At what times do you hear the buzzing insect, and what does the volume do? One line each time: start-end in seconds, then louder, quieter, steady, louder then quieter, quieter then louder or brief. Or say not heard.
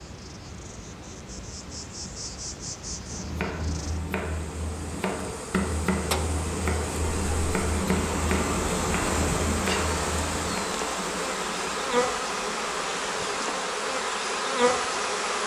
0.0-15.4 louder.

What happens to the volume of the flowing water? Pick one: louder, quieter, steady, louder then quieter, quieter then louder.
louder then quieter.